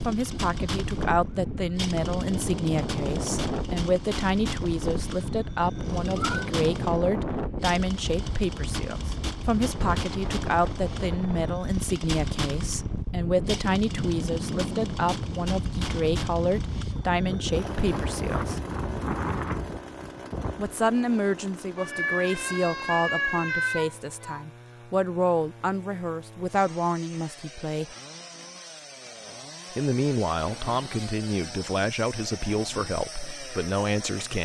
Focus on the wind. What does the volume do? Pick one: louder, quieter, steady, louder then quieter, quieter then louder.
steady.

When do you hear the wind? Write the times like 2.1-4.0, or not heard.
0.0-20.8.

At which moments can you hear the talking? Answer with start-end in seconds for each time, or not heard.
0.0-18.6, 20.6-27.9, 29.7-34.4.